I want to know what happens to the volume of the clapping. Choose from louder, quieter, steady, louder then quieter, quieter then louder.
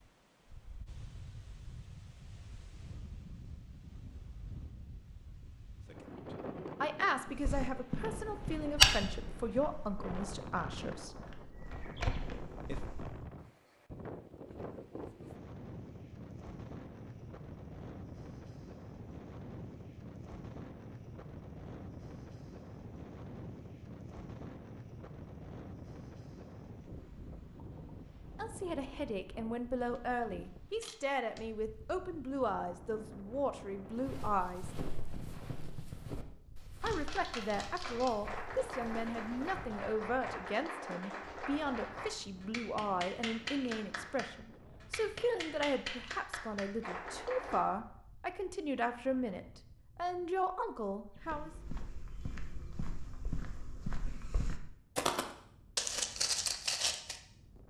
steady.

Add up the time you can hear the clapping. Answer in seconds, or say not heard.
11 s.